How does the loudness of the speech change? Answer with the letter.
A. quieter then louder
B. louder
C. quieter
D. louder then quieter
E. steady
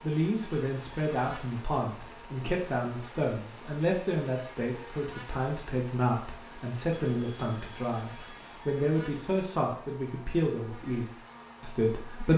E.